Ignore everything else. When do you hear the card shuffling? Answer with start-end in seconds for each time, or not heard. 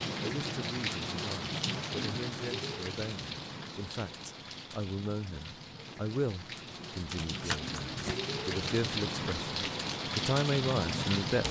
7.1-8.2.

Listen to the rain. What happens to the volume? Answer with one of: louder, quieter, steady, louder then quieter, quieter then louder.
quieter then louder.